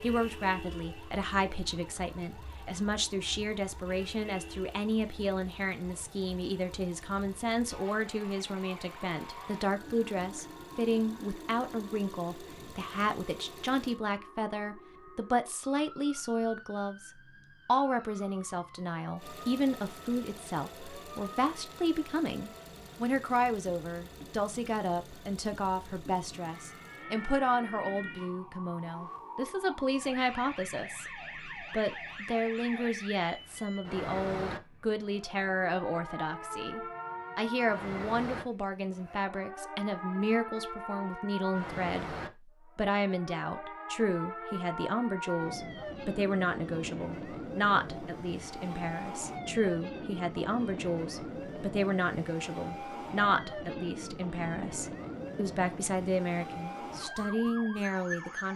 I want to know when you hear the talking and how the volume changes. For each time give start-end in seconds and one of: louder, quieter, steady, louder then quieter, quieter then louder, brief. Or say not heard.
0.0-42.1 steady
42.8-58.5 steady.